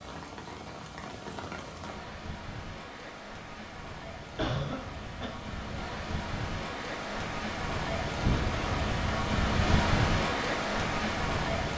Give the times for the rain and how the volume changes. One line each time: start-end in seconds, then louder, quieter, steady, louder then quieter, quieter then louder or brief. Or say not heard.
0.0-11.7 louder.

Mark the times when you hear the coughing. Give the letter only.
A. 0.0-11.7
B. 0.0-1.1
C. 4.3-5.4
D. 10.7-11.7
C.